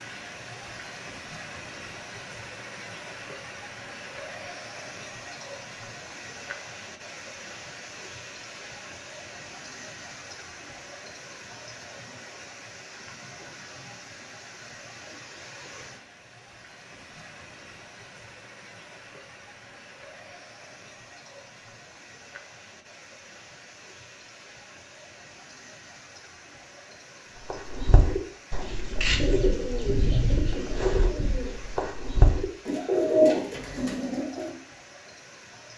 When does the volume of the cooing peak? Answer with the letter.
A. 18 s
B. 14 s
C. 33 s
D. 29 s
C.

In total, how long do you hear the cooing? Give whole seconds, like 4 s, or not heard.
7 s.